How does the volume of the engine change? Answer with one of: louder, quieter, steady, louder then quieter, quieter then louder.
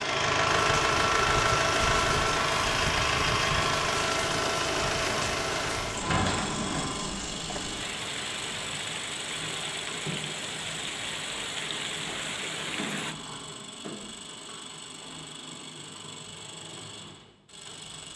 quieter.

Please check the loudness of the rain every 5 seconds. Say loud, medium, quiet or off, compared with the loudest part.
loud, loud, loud, off.